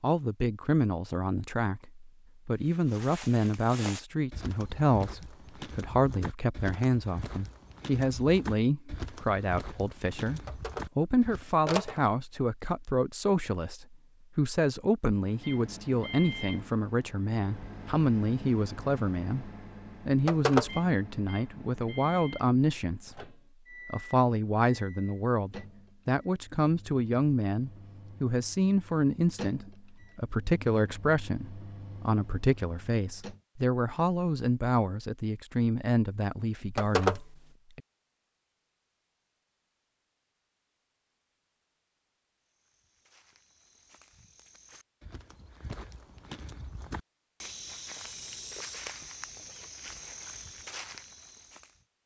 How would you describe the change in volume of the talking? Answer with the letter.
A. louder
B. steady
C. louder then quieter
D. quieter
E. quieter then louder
B.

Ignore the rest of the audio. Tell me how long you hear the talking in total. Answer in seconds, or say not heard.
37 s.